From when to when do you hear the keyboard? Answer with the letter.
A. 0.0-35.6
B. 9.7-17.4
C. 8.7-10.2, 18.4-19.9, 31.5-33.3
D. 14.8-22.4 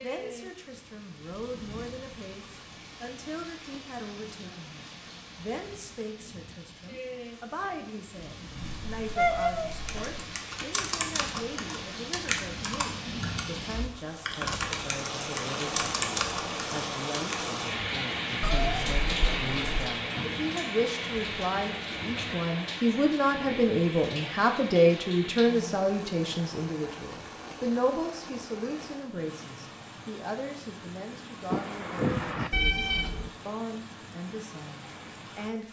B.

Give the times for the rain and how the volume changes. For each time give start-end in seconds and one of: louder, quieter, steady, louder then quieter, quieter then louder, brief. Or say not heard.
0.0-35.6 louder then quieter.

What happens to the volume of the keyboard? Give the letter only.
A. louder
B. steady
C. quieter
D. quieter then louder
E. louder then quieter
D.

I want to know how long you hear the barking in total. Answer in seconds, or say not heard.
not heard.